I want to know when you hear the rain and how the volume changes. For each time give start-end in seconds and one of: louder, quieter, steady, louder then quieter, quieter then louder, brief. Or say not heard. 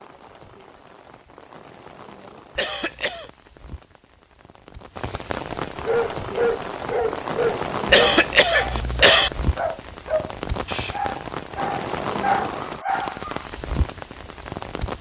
0.0-14.9 louder.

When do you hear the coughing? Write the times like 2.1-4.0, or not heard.
2.5-3.3, 7.8-9.3.